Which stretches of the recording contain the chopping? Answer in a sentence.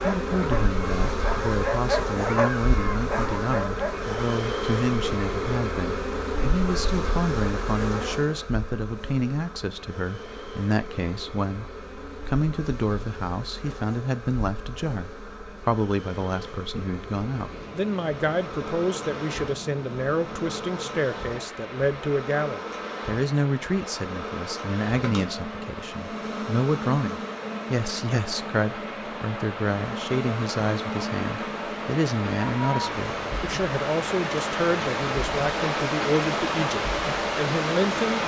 The chopping can't be heard in this clip.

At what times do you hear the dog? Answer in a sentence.
The dog can be heard from 0.0 to 4.3 s.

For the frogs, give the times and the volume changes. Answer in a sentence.
You can't hear the frogs here.